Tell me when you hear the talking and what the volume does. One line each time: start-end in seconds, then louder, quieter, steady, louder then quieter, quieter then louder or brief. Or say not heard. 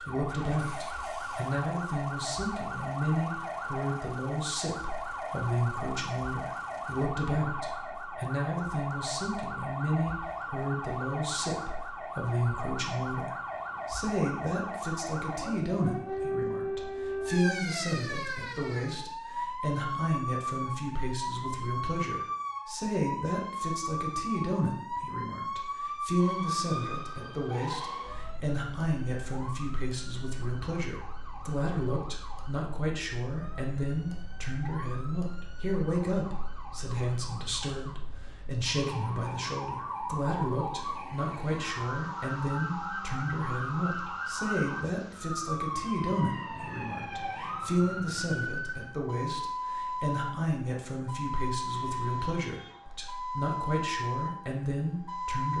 0.0-55.5 steady.